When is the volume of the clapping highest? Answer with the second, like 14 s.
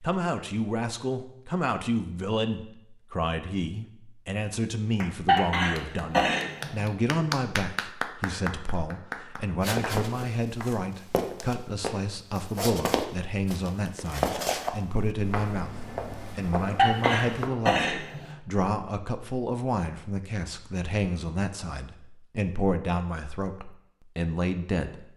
7 s.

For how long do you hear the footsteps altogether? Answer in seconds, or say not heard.
8 s.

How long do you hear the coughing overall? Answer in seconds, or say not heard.
3 s.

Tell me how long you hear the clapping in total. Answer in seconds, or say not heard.
6 s.